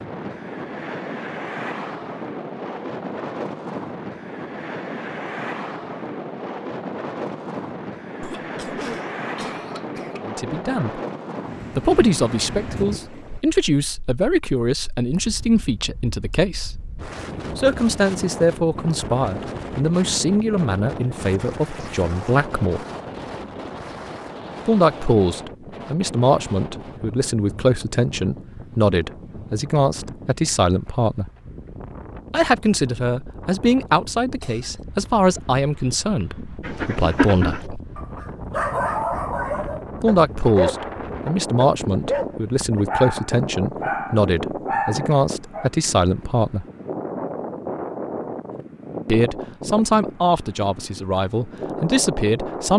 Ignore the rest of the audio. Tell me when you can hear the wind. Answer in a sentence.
You can hear the wind from 0.0 to 52.7 s.